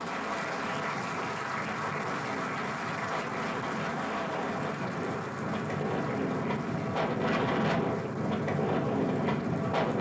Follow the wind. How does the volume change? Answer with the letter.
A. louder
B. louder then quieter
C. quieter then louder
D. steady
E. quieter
A.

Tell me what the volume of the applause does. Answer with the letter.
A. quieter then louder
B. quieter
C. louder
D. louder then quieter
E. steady
B.